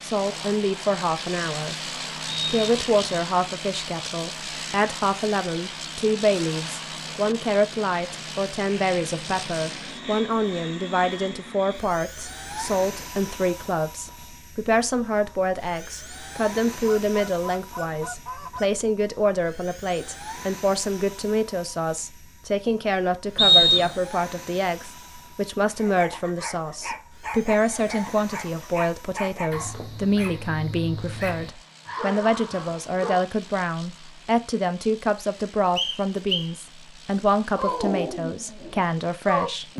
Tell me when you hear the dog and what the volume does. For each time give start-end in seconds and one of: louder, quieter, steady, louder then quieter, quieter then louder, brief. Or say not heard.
25.8-33.2 steady
37.5-39.7 brief.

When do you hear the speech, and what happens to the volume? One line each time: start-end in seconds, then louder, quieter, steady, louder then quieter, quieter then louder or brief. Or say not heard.
0.0-1.8 brief
2.5-39.7 steady.